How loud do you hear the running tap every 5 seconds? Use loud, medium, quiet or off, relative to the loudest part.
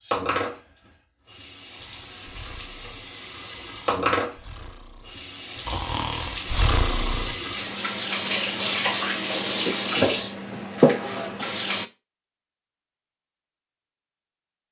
medium, loud, loud.